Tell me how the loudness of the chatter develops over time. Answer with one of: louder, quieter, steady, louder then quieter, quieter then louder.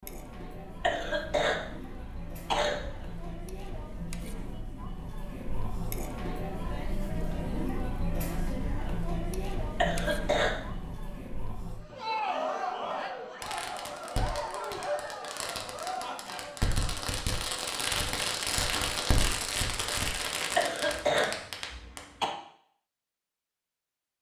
louder.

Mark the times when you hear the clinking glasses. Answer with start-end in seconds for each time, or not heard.
not heard.